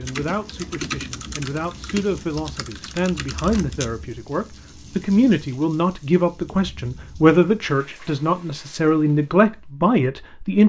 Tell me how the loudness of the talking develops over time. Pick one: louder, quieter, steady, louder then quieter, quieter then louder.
louder.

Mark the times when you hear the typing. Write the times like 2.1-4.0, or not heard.
0.0-3.9.